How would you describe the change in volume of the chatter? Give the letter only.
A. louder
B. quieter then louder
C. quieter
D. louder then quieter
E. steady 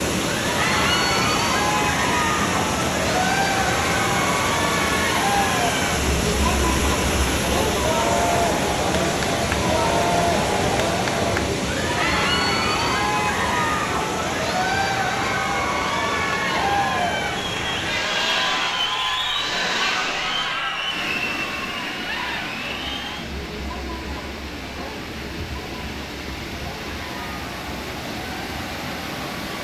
C.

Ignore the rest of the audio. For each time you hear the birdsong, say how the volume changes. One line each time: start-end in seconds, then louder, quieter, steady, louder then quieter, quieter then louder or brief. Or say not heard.
not heard.